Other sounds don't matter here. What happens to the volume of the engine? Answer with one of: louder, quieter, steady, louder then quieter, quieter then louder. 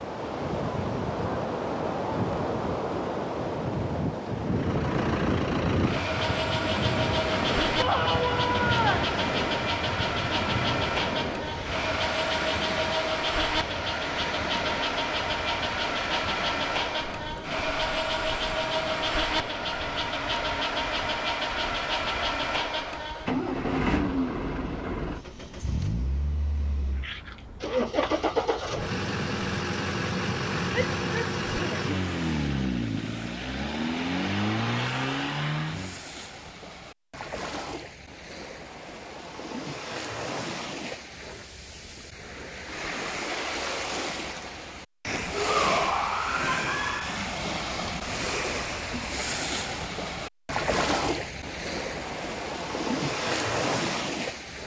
steady.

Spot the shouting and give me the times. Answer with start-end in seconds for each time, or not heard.
7.8-9.1, 30.7-31.8, 45.3-47.3.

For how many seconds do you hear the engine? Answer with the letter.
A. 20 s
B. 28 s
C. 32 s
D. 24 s
C.